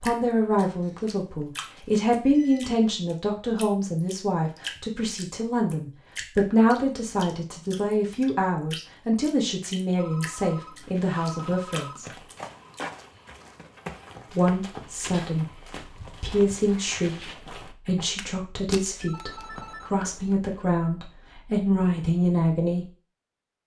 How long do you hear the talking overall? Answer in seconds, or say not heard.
21 s.